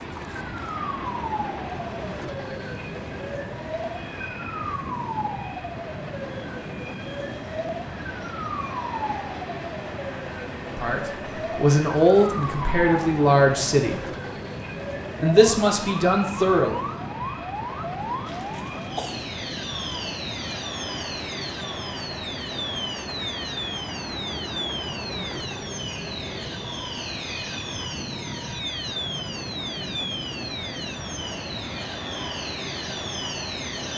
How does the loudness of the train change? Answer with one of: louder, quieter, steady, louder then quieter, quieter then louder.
steady.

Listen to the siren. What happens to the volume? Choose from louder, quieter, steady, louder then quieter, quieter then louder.
steady.